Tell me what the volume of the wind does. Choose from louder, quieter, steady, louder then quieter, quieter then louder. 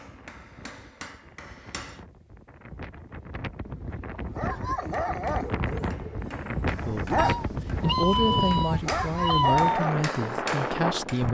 louder.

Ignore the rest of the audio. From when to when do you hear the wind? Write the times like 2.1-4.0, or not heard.
0.0-11.2.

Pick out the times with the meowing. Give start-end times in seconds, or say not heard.
7.2-9.8.